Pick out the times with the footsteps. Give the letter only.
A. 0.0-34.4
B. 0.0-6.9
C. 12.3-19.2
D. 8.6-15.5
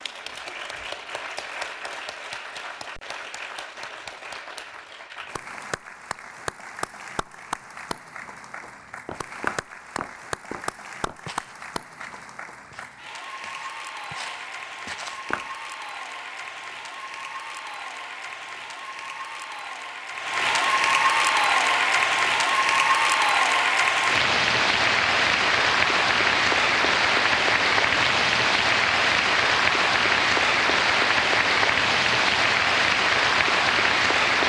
D.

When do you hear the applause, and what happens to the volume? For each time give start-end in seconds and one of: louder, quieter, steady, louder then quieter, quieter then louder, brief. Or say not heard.
0.0-34.4 louder.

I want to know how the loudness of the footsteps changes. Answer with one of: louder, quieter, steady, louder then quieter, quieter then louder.
quieter then louder.